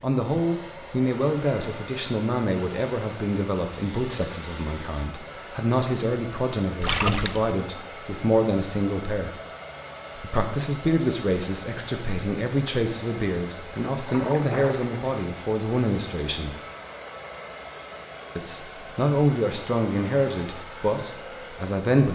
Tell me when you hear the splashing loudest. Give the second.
7 s.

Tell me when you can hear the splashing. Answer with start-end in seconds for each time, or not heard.
6.8-7.5, 14.1-14.9.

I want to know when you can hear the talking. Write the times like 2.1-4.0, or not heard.
0.0-9.3, 10.2-16.6, 18.4-22.1.